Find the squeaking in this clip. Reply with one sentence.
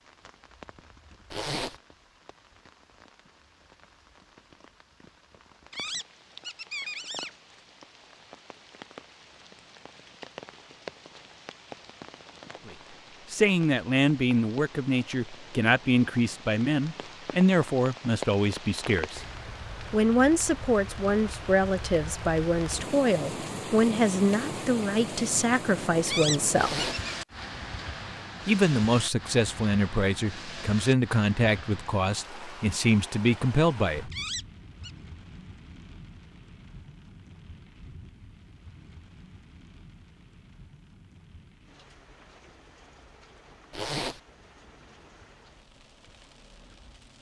The squeaking can be heard from 5.7 to 7.3 s, from 26.1 to 27.1 s and from 34.1 to 34.9 s.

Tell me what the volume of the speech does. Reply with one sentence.
The loudness of the speech stays about the same.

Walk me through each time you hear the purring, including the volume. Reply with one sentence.
You can't hear the purring here.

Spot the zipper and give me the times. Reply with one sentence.
The zipper can be heard from 1.3 to 1.8 s, from 26.5 to 27.0 s and from 43.7 to 44.2 s.